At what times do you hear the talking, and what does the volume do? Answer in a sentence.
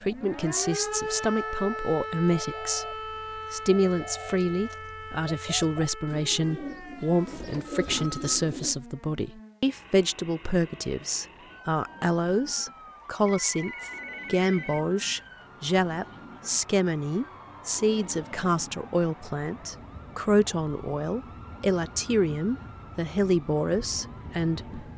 You can hear the talking from 0.0 to 24.6 s, at a steady volume.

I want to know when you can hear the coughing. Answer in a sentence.
You can't hear the coughing here.